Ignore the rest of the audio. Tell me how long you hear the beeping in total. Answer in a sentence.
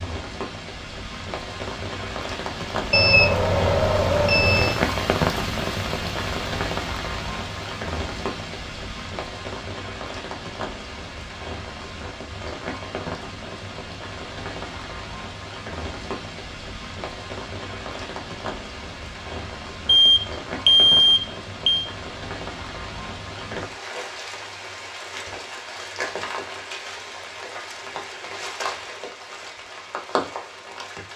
The beeping can be heard for 4 seconds in total.